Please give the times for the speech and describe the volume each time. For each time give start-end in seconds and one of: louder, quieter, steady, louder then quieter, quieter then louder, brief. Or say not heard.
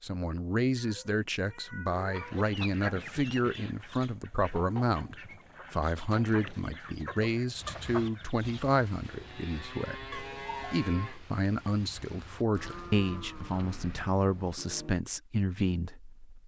0.0-16.4 steady.